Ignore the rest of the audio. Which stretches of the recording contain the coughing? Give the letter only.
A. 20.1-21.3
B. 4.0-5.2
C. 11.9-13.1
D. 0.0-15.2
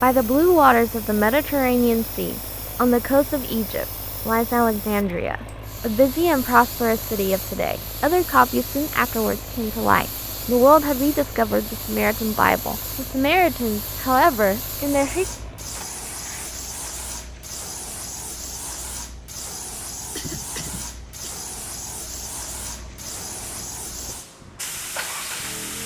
A.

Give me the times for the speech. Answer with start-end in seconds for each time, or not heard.
0.0-15.2.